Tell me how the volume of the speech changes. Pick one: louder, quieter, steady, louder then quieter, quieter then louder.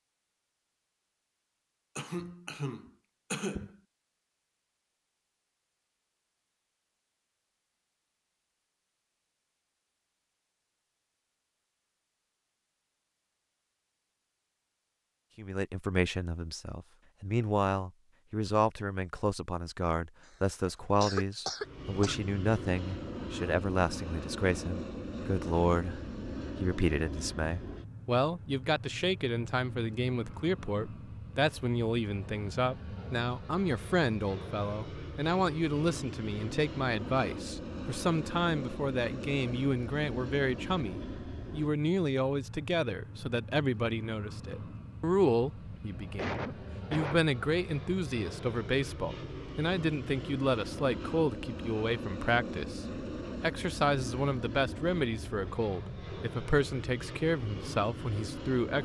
steady.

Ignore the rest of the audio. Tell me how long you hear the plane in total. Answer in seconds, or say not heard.
37 s.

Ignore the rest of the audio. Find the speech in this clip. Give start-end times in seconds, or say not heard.
15.3-58.8.